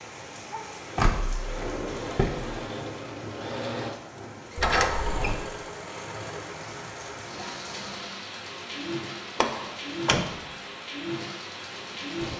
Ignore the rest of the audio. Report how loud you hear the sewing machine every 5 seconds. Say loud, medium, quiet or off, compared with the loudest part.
loud, loud, medium.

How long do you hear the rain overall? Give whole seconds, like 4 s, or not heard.
12 s.